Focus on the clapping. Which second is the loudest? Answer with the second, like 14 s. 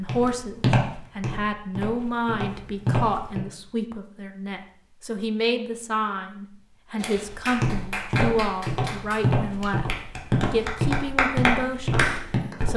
11 s.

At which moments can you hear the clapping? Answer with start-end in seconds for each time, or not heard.
7.0-12.6.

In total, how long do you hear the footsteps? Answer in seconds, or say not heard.
9 s.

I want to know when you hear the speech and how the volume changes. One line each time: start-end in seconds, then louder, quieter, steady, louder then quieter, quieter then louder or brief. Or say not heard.
0.0-12.7 steady.